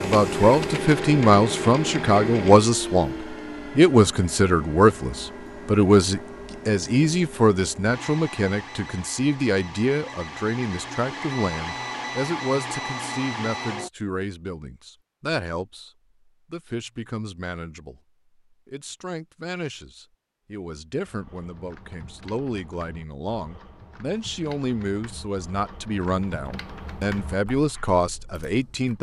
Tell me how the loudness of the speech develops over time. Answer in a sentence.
The loudness of the speech goes down, then up.